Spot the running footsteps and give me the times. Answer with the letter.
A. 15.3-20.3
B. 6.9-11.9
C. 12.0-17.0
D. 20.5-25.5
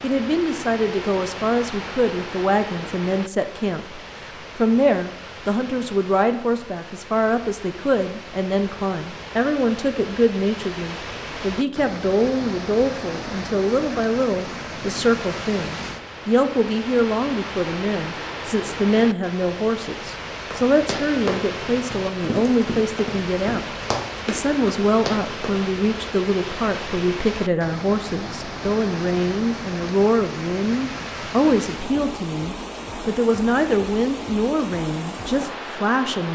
D.